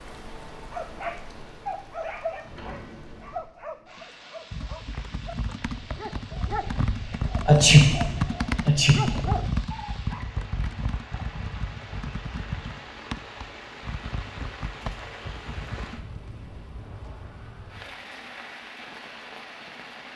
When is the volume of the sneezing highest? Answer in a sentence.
The loudest moment of the sneezing is at 8 seconds.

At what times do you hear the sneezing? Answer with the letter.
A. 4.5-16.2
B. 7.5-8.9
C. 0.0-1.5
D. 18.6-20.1
B.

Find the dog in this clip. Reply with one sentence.
You can hear the dog from 0.7 to 10.2 s.